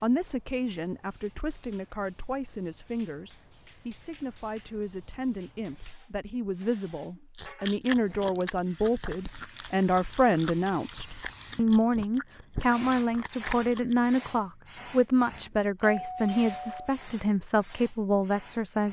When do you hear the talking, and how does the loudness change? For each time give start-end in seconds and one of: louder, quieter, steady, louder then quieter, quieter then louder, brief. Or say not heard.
0.0-18.8 louder.